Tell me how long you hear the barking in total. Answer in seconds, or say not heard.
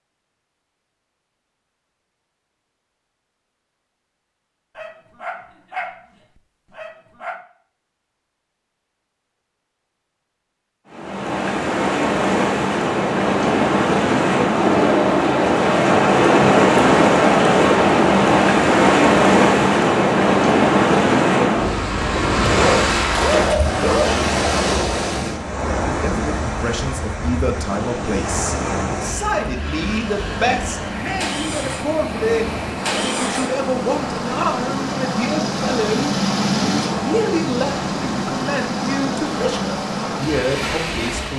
4 s.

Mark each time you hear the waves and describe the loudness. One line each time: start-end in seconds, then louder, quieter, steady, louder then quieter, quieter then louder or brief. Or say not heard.
10.9-41.3 quieter.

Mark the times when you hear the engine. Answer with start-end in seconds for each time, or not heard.
31.0-41.3.